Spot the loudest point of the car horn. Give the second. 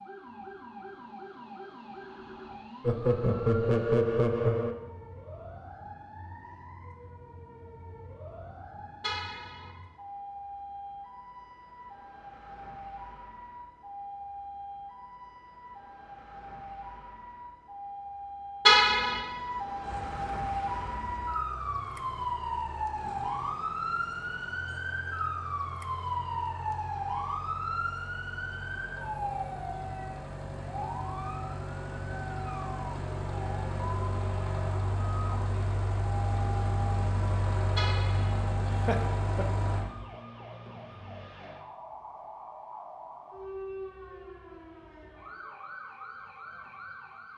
19 s.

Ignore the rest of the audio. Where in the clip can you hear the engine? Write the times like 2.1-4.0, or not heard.
19.8-39.9.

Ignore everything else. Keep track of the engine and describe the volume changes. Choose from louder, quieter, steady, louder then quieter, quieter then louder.
louder.